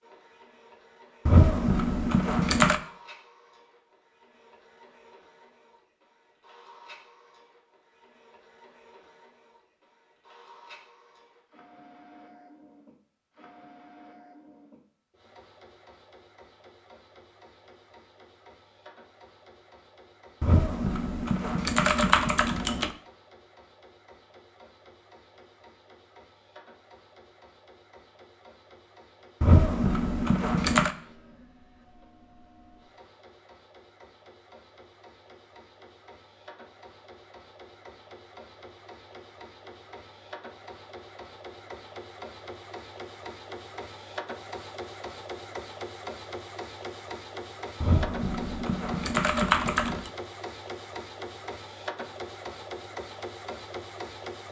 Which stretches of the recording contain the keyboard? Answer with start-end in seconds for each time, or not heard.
1.2-2.8, 20.4-22.9, 29.4-30.9, 47.8-50.1.